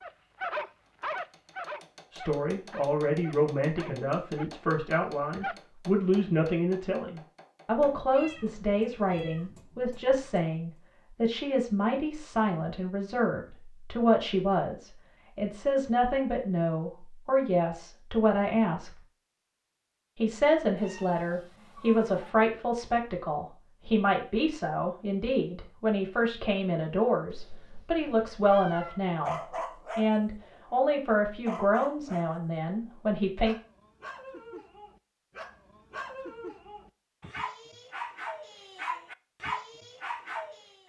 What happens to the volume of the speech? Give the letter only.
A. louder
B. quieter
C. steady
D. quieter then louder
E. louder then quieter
C.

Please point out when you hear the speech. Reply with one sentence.
You can hear the speech from 2.1 to 18.9 s and from 20.1 to 33.5 s.